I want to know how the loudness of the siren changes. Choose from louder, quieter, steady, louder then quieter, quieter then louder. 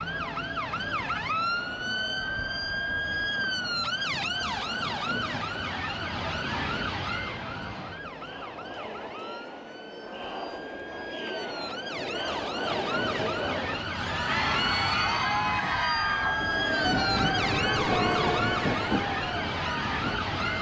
quieter then louder.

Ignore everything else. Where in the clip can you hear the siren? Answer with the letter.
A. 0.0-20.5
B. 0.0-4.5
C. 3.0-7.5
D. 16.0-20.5
A.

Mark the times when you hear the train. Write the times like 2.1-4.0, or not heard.
16.0-20.5.